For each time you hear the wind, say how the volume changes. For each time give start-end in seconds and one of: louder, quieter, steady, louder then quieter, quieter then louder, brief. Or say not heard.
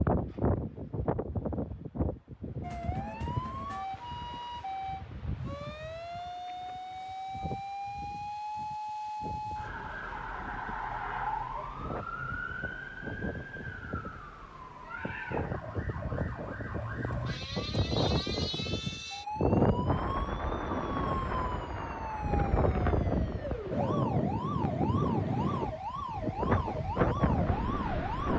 0.0-28.3 quieter then louder.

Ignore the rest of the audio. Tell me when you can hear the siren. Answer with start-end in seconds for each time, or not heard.
2.6-28.3.